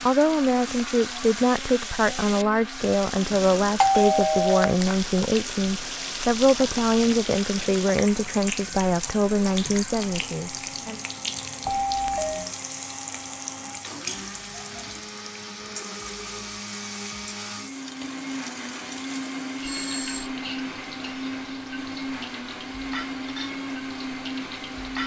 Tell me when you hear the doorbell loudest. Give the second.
4 s.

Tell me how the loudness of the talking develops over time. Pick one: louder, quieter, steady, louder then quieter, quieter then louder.
steady.